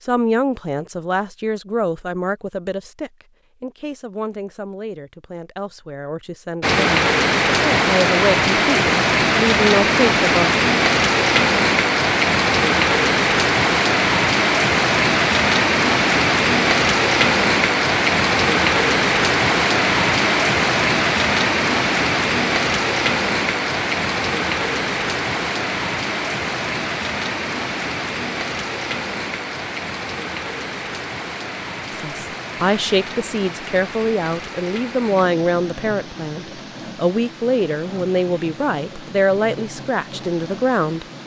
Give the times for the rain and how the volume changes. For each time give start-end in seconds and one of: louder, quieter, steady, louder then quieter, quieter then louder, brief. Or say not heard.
6.6-41.2 quieter.